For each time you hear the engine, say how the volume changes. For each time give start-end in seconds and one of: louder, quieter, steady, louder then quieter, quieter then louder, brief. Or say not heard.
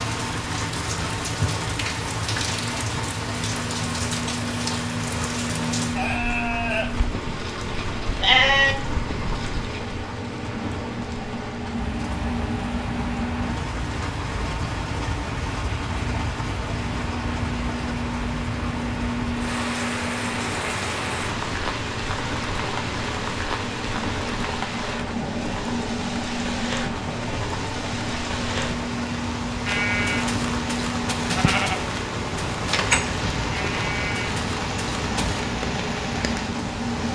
0.0-37.1 steady.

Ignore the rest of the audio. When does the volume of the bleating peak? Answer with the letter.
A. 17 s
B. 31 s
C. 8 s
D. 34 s
C.